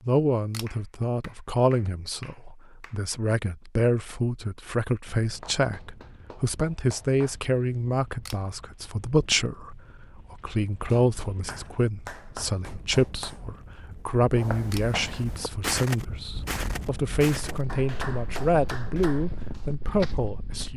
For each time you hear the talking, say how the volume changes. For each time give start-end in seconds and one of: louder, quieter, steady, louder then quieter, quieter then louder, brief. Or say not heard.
0.1-20.7 steady.